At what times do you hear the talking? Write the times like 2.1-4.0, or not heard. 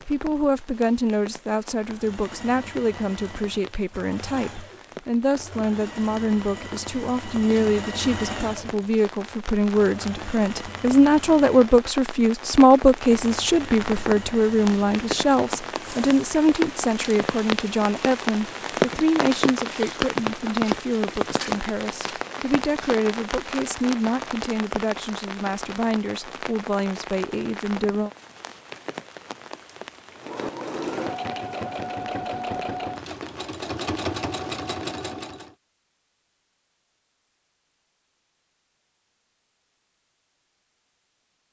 0.1-28.1.